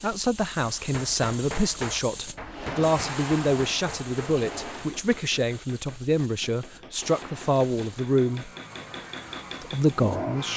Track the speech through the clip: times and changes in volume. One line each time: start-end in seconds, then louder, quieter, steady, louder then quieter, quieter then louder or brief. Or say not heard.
0.0-8.5 steady
9.6-10.5 brief.